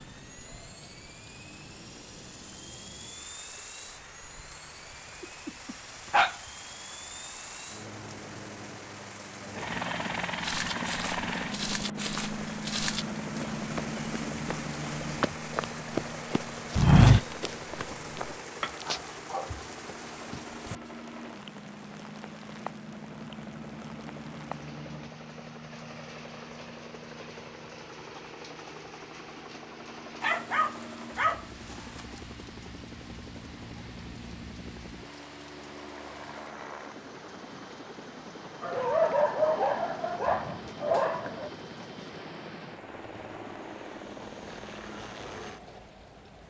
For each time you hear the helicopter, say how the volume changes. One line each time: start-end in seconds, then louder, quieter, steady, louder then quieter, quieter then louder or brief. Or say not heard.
0.0-46.4 louder then quieter.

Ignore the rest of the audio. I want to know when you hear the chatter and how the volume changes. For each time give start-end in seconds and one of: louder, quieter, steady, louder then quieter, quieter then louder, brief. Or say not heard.
not heard.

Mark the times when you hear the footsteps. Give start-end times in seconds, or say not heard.
10.4-18.3.